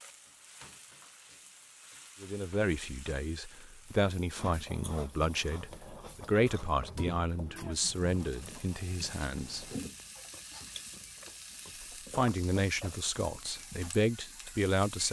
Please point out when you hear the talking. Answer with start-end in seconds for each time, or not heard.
2.2-9.7, 12.1-15.0.